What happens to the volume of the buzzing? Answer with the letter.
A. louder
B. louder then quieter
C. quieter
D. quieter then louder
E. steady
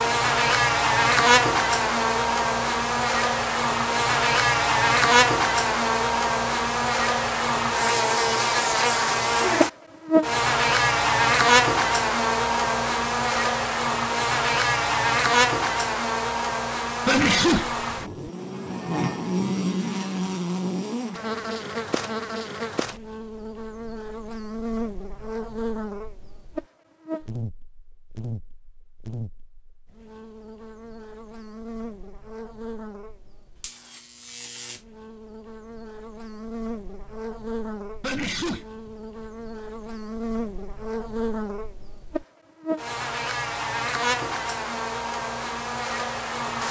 D.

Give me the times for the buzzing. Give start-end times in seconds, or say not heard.
0.0-46.6.